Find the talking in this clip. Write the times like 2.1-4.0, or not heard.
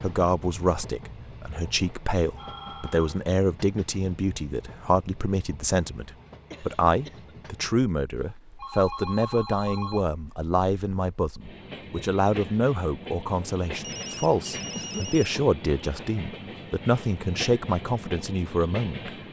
0.0-19.1.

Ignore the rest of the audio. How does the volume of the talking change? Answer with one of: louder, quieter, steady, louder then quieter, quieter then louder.
steady.